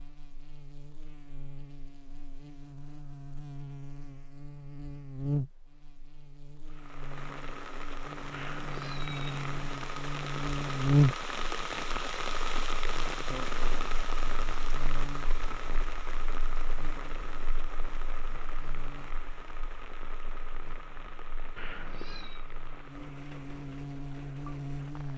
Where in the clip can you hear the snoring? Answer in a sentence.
You can't hear the snoring here.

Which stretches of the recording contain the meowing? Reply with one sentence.
You can hear the meowing from 8.3 to 9.6 s and from 21.6 to 22.4 s.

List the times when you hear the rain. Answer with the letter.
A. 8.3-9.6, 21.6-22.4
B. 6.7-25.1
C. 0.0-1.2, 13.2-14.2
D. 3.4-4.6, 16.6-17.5
B.